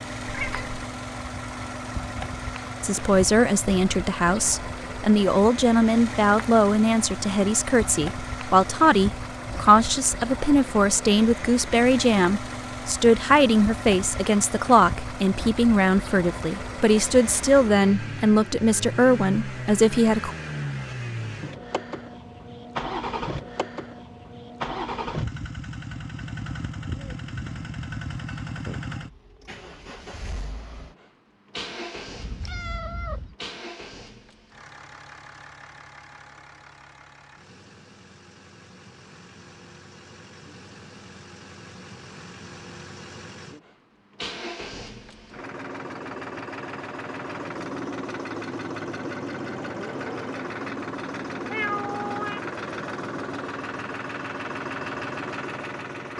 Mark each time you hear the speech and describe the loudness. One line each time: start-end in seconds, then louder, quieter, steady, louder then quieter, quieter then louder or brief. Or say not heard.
2.8-20.3 steady.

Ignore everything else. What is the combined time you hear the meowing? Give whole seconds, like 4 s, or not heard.
3 s.